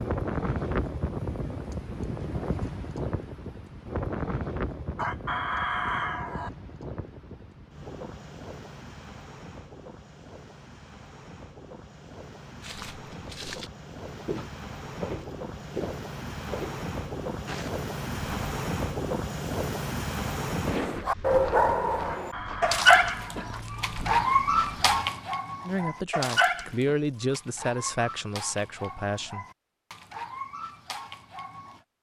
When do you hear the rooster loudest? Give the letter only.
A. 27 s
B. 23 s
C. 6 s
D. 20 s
C.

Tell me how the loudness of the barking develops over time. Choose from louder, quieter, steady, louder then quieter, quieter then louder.
quieter.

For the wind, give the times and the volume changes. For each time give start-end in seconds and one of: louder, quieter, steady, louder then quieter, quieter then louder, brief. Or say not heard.
0.0-21.1 quieter then louder.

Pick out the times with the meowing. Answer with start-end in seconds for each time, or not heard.
not heard.